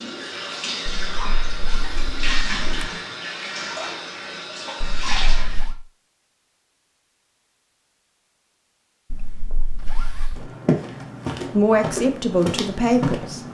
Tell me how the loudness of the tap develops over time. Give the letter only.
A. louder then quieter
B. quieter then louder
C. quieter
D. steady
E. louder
D.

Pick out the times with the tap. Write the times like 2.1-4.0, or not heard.
0.0-5.7.